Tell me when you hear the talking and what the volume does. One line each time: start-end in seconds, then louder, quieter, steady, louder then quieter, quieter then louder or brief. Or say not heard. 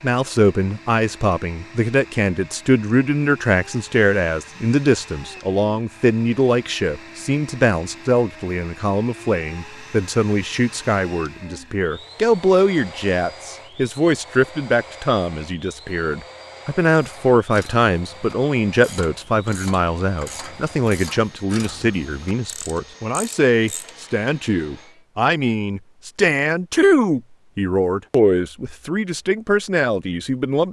0.0-30.6 steady.